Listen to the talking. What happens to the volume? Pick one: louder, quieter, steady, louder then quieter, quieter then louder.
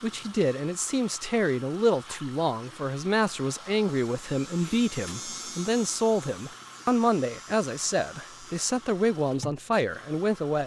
steady.